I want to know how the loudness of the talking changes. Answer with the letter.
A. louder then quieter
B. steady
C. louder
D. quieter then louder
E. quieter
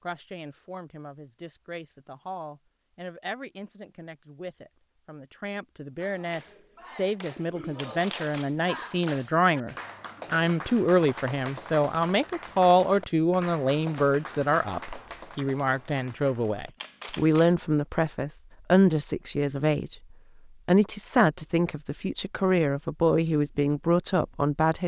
C.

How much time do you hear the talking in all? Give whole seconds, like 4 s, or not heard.
24 s.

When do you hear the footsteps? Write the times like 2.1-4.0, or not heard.
not heard.